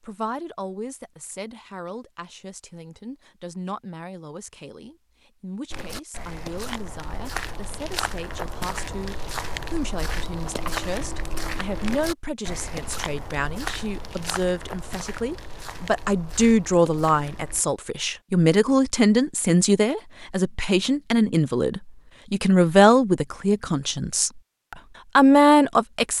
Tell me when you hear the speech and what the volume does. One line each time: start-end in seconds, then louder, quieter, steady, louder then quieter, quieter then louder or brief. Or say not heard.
0.0-26.1 louder.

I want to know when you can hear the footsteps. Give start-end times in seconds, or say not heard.
5.7-17.6.